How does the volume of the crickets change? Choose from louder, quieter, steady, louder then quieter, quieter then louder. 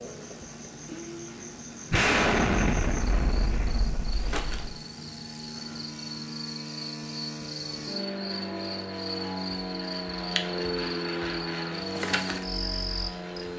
louder.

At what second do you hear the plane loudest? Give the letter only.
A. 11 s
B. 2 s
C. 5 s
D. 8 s
A.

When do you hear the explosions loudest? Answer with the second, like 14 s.
2 s.